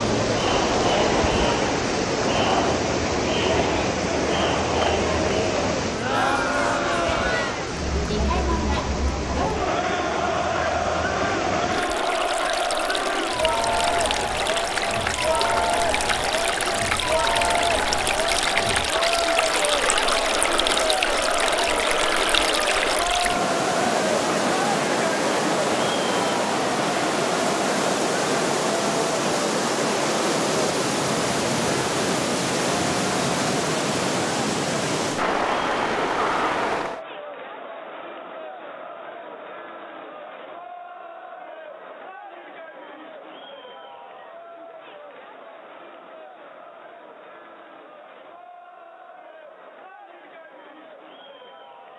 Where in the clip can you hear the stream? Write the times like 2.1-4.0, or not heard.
0.0-37.0.